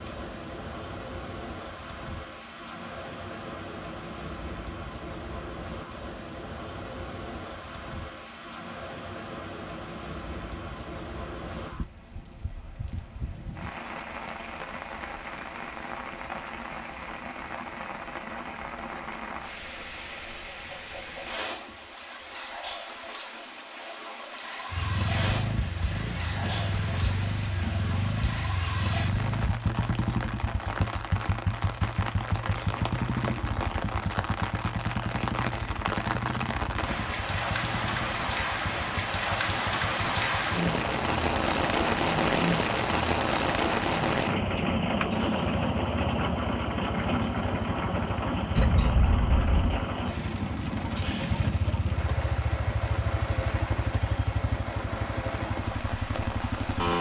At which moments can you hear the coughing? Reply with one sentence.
The coughing can be heard from 48.5 to 49.9 s.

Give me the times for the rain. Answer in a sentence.
The rain can be heard from 0.0 to 56.9 s.